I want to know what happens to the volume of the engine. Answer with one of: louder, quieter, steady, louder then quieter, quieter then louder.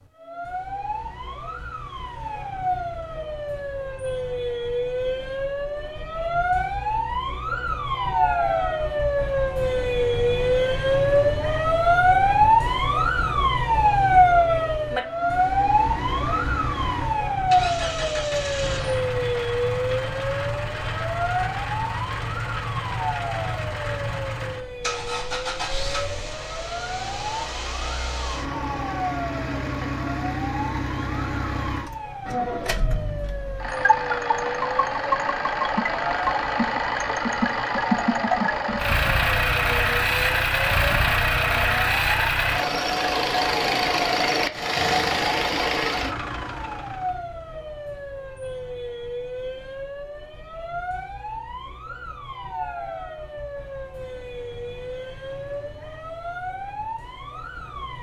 louder.